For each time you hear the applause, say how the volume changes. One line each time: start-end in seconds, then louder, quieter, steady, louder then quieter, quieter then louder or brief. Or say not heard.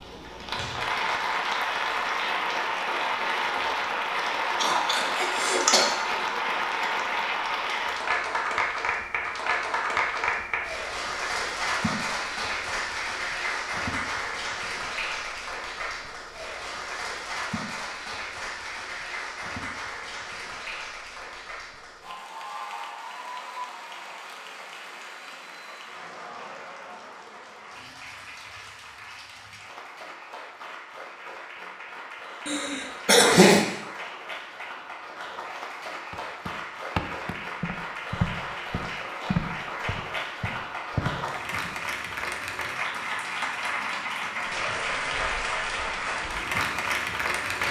0.0-47.6 quieter then louder.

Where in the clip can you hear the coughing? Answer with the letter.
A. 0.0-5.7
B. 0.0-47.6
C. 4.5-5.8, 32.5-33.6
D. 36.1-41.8
C.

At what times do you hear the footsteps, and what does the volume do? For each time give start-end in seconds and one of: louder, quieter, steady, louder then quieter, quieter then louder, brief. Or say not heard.
36.1-41.8 quieter then louder.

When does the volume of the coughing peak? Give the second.
33 s.